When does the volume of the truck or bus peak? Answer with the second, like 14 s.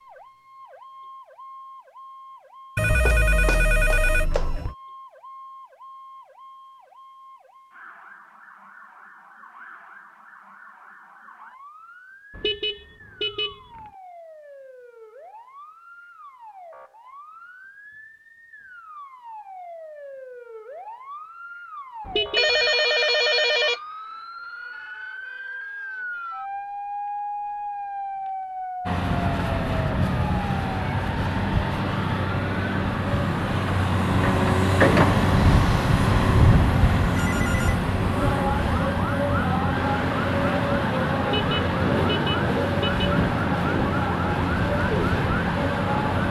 35 s.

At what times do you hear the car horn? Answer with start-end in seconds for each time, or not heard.
12.3-13.6, 22.1-22.6, 41.2-43.0.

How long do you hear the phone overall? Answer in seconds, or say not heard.
4 s.